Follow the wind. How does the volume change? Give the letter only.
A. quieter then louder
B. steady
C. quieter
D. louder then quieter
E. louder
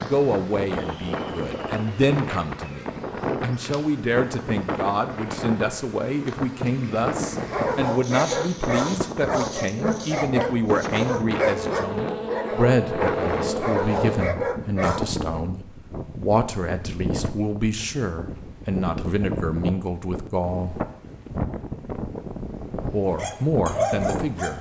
B.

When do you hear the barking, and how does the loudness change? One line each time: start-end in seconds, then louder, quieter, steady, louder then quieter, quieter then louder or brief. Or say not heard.
7.4-15.2 steady
23.1-24.5 brief.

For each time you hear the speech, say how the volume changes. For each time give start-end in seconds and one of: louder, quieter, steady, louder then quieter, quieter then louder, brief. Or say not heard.
0.0-20.9 steady
22.8-24.5 brief.